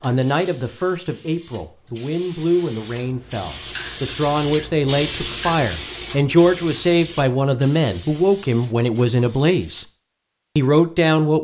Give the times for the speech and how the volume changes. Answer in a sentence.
The speech can be heard from 0.0 to 9.8 s, getting louder; and briefly from 10.6 to 11.3 s.